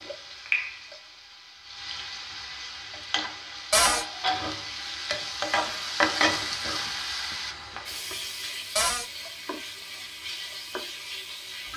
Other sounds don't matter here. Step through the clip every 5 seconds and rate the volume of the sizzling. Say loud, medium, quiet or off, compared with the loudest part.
loud, loud, medium.